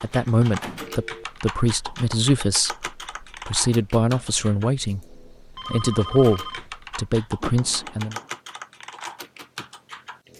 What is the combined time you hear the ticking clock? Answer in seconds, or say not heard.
not heard.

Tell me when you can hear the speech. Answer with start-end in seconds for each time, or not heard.
0.0-8.2.